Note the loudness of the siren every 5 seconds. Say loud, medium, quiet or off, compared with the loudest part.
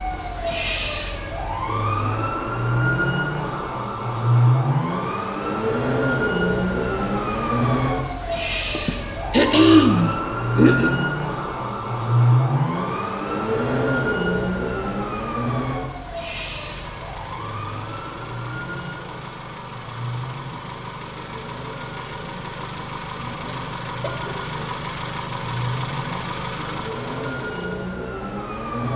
loud, loud, loud, medium, quiet, medium.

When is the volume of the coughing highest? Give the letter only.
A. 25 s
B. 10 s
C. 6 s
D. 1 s
B.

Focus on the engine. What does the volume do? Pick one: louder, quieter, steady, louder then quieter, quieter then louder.
louder.